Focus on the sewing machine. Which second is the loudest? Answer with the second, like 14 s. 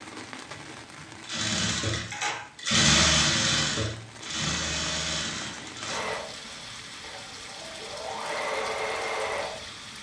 3 s.